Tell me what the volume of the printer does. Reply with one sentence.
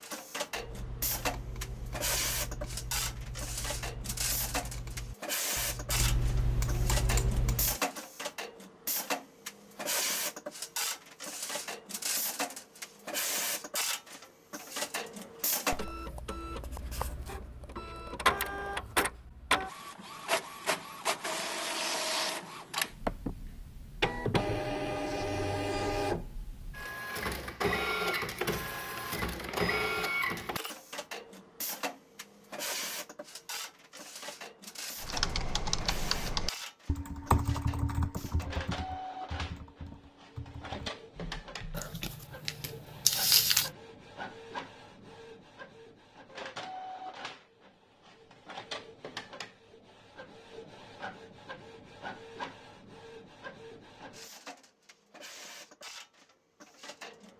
The loudness of the printer goes down.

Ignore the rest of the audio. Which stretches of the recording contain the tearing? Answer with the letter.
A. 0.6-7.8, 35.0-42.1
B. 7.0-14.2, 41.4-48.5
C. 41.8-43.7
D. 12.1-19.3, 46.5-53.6
C.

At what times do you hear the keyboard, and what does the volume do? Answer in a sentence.
The keyboard can be heard from 0.6 to 7.8 s, getting louder; and from 35.0 to 42.1 s, getting quieter.